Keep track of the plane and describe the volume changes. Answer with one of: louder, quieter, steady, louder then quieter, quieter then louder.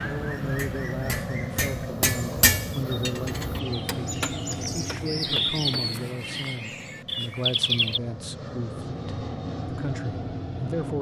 quieter then louder.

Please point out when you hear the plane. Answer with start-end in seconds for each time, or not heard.
0.0-10.9.